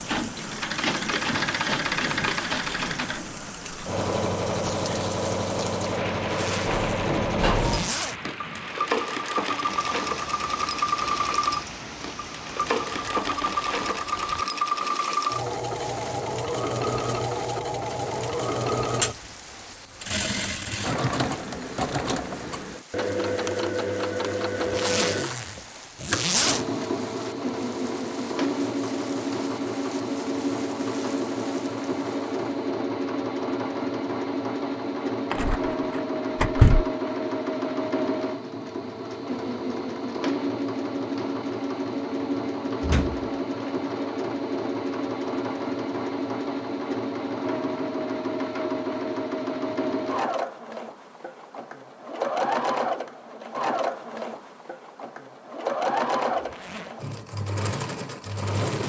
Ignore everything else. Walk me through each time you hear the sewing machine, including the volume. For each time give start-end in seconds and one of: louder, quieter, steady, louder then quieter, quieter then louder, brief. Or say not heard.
0.0-58.8 steady.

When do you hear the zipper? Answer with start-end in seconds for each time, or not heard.
6.2-8.2, 24.6-26.6, 56.3-57.0.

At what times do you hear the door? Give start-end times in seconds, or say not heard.
6.7-7.9, 35.3-36.9, 42.8-43.7.